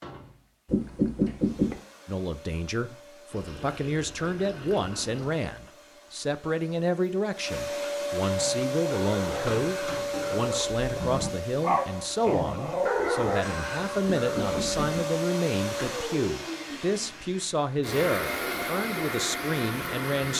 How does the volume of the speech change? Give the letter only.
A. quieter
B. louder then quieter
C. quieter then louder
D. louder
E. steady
E.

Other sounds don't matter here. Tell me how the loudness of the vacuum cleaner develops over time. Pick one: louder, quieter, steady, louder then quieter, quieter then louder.
louder.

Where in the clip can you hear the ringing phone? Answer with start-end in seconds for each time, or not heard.
0.7-1.8, 14.2-15.0.